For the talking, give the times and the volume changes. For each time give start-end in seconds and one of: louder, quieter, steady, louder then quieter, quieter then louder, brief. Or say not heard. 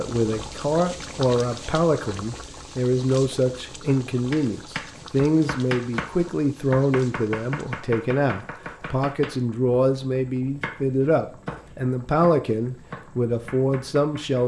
0.0-14.4 steady.